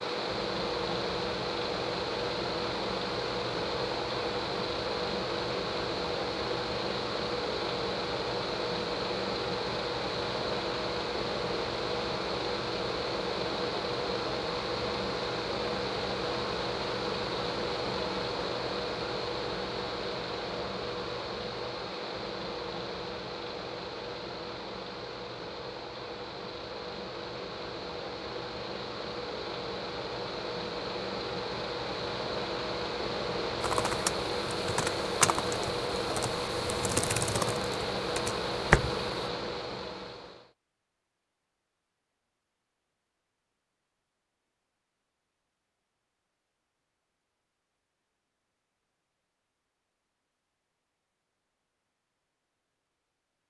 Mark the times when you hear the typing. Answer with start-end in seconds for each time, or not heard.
33.6-39.0.